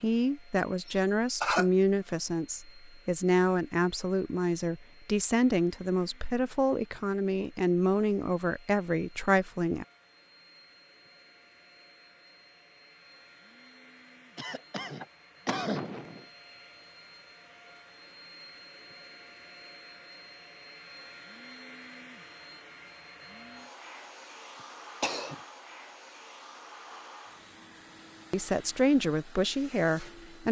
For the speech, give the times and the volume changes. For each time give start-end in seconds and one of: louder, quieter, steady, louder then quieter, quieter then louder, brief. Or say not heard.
0.0-9.8 steady
28.3-30.4 brief.